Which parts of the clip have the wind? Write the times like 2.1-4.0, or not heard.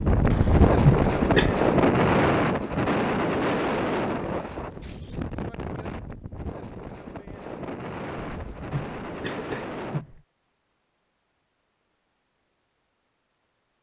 0.0-10.1.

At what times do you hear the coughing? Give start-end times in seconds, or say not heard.
0.3-1.6, 8.2-10.2.